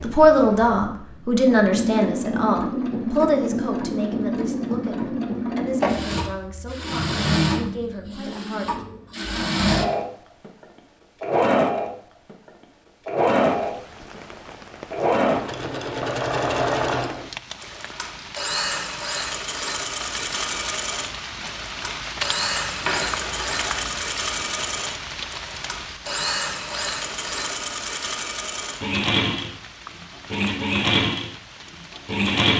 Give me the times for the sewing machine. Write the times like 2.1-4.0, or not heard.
0.0-32.5.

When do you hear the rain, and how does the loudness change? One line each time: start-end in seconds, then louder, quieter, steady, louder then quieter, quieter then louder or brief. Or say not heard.
13.4-32.3 louder then quieter.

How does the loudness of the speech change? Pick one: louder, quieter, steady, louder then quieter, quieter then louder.
quieter.